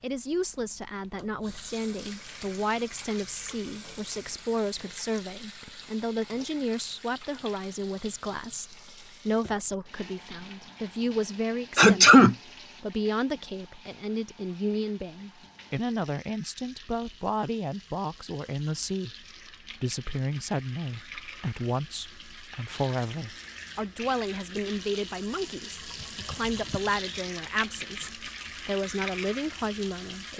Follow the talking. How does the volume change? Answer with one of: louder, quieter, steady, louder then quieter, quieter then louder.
steady.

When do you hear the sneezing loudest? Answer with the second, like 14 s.
12 s.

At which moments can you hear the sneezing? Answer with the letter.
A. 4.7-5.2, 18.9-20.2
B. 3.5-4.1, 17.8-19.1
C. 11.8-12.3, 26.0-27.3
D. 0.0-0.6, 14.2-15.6
C.